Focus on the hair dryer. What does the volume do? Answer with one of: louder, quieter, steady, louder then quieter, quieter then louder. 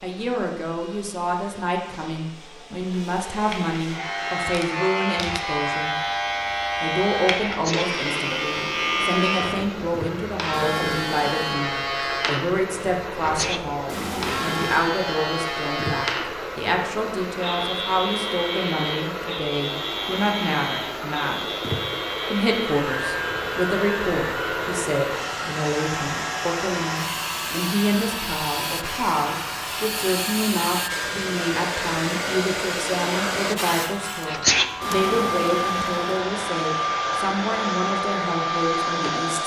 louder.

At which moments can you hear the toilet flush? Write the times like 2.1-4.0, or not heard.
10.5-11.6, 13.8-14.9, 34.8-36.1.